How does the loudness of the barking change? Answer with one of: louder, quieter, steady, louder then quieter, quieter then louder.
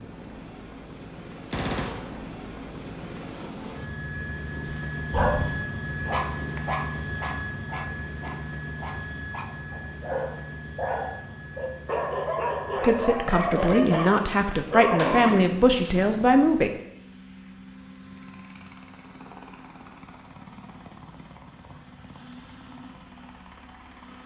quieter then louder.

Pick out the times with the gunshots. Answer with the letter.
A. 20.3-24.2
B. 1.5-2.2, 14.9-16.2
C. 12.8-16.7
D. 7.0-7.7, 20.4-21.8
B.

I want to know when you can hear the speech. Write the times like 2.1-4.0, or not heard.
12.8-16.7.